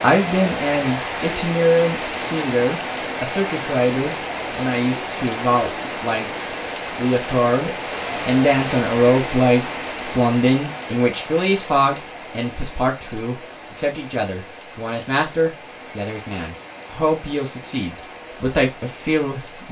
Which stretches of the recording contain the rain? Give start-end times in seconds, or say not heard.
0.0-19.6.